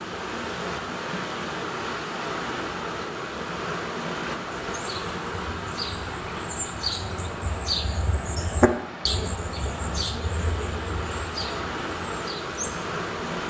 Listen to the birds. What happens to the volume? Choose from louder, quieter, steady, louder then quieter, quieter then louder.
louder then quieter.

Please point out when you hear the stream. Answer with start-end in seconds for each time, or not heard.
0.0-13.4.